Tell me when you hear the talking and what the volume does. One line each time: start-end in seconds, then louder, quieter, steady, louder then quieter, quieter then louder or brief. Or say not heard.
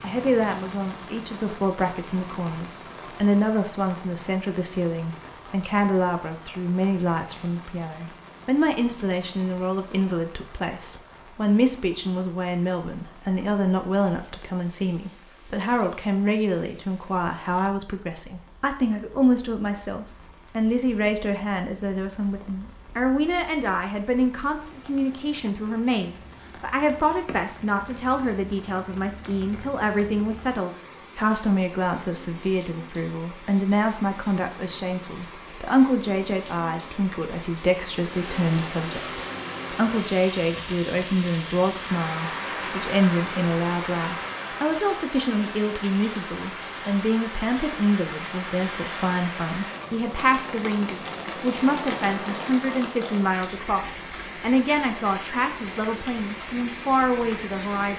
0.0-57.9 steady.